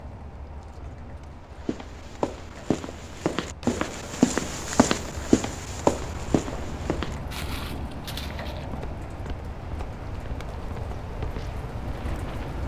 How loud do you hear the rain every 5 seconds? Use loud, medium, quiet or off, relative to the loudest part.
medium, loud, loud.